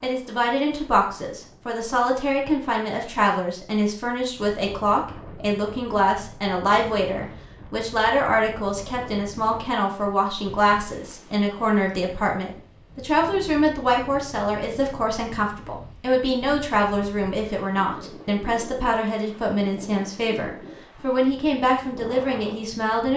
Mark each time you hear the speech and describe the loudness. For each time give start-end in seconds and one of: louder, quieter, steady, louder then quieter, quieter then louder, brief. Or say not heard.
0.0-23.1 steady.